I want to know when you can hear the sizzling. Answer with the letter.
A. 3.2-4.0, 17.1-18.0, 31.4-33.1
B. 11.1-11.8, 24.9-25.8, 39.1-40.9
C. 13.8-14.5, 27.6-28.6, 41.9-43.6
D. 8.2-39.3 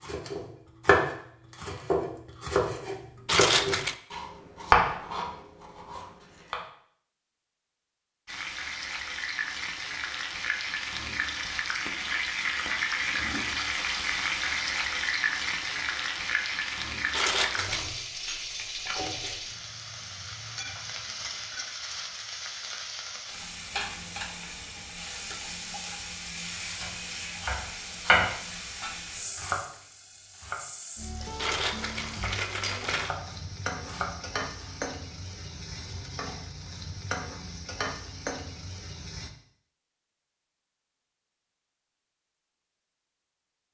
D.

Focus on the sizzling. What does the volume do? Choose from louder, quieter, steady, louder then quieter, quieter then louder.
quieter.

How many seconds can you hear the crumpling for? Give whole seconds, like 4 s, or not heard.
3 s.